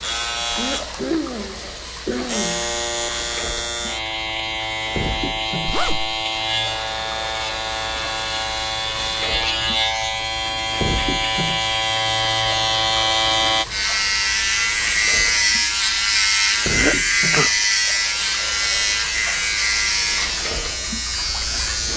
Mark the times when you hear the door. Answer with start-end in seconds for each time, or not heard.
not heard.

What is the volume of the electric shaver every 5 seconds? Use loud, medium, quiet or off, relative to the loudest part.
medium, medium, loud, loud, medium.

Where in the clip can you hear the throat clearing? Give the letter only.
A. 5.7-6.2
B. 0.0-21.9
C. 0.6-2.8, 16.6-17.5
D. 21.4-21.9
C.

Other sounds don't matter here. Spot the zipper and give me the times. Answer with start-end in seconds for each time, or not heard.
5.7-6.2.